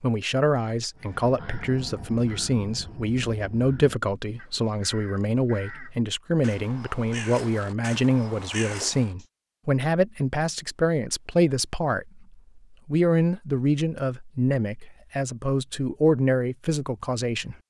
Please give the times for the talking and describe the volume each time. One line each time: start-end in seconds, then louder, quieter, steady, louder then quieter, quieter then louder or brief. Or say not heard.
0.0-17.6 steady.